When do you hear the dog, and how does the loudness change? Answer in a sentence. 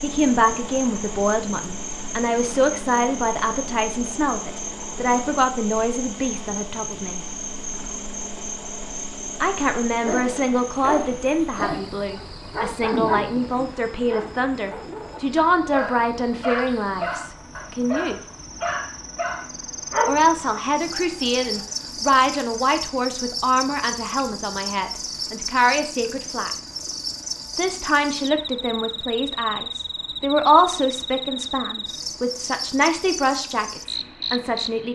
The dog can be heard from 10.0 to 21.6 s, at a steady volume.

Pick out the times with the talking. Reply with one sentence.
The talking can be heard from 0.0 to 7.2 s, from 9.4 to 18.2 s, from 20.1 to 26.5 s and from 27.6 to 34.9 s.